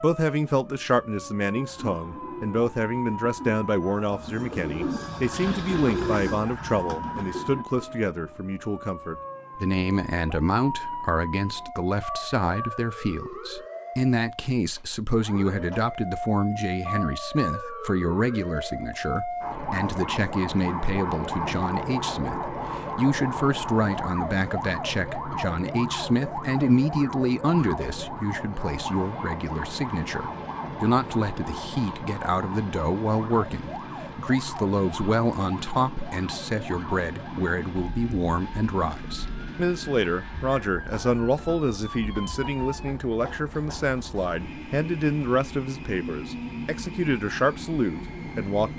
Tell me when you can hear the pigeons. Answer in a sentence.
You can hear the pigeons from 1.1 to 8.1 s.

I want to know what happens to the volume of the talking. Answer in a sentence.
The volume of the talking stays about the same.